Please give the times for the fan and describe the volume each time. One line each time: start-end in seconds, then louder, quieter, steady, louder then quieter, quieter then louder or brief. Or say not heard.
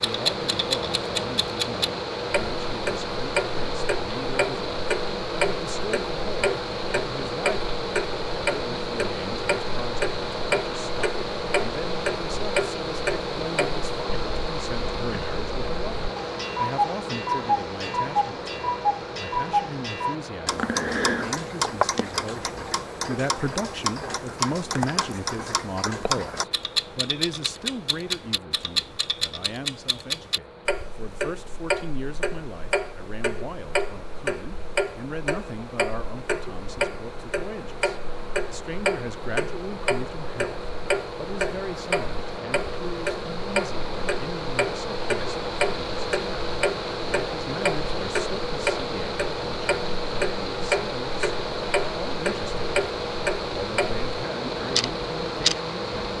0.0-56.1 quieter then louder.